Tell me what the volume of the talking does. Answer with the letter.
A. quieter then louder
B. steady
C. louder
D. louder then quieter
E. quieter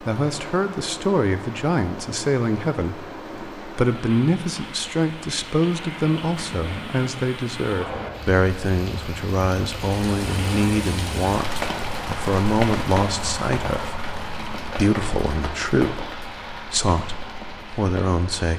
B.